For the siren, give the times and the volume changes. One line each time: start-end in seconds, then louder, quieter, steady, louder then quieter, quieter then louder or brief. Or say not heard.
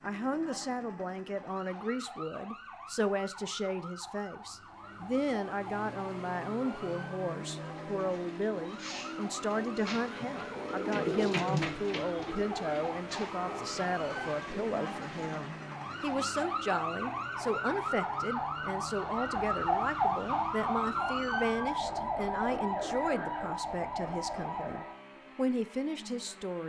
0.0-24.9 louder.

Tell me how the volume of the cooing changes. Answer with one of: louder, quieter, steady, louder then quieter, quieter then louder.
louder then quieter.